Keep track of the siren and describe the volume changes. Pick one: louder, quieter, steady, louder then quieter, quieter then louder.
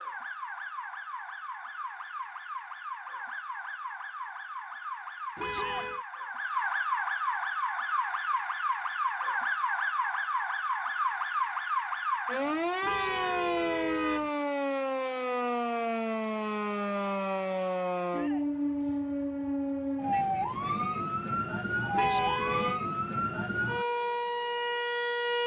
louder.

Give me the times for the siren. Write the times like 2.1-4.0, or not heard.
0.0-25.4.